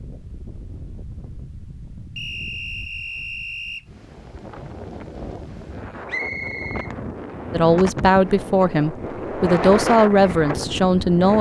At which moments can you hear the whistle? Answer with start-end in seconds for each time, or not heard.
2.1-3.9, 6.0-6.9.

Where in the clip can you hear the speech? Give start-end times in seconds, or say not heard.
7.5-11.3.